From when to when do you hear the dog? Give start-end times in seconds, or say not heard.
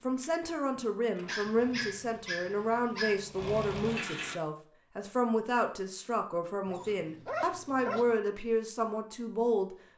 1.2-3.2, 6.7-8.2.